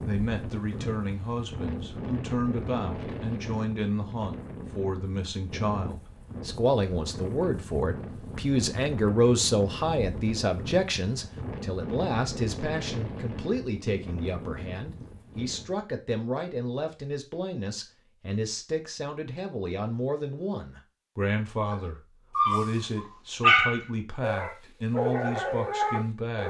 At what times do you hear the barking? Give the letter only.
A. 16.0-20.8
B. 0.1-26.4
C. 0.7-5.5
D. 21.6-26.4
D.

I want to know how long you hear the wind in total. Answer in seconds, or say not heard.
16 s.